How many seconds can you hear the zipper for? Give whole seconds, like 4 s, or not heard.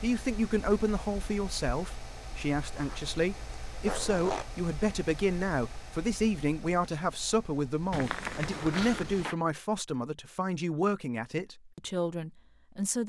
3 s.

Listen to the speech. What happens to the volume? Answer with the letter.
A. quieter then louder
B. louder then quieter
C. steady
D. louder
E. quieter
C.